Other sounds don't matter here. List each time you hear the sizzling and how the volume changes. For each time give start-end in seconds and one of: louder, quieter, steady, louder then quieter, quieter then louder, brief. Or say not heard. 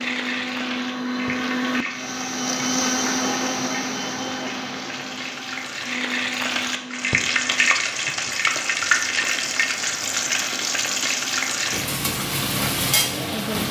0.0-13.6 louder.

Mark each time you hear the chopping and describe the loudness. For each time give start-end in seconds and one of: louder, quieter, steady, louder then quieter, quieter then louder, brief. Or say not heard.
not heard.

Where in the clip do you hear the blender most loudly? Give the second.
3 s.